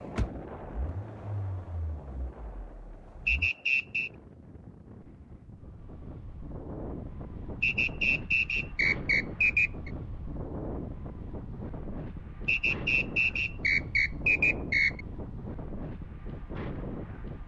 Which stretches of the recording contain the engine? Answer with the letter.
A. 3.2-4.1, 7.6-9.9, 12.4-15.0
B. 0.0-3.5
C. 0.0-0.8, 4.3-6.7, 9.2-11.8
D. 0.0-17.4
B.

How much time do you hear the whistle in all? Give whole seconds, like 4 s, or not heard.
6 s.